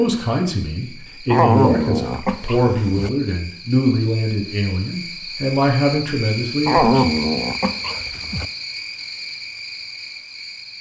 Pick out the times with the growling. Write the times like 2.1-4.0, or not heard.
1.3-3.1, 6.7-8.4.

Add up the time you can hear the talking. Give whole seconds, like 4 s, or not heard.
7 s.